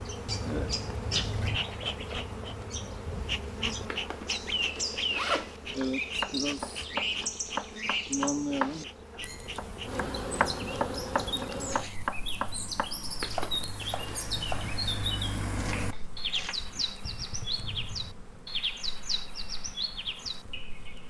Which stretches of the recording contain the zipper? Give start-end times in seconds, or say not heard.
3.9-5.6, 13.2-14.3.